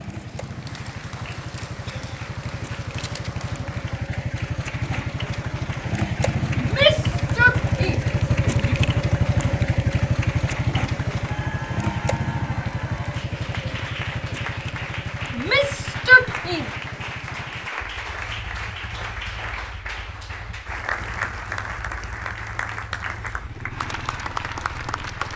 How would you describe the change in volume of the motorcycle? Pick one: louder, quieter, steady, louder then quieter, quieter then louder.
louder then quieter.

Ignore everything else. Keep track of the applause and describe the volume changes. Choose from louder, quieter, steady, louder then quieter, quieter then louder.
louder.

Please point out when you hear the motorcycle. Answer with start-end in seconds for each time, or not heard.
0.0-25.3.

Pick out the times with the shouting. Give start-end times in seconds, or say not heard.
6.5-8.8, 15.3-16.7.